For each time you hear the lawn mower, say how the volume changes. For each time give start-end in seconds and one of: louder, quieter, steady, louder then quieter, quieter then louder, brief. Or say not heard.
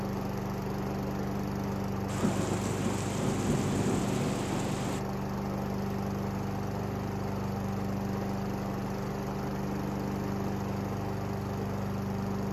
0.0-12.4 steady.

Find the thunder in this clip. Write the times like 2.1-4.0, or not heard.
2.0-5.0.